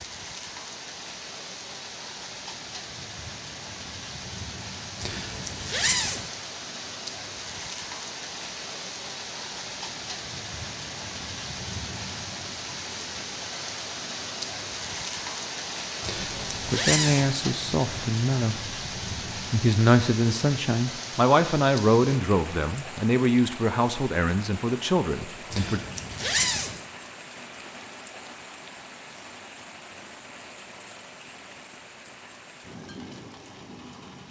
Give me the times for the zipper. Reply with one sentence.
You can hear the zipper from 5.0 to 6.2 s, from 16.0 to 17.3 s and from 25.5 to 26.8 s.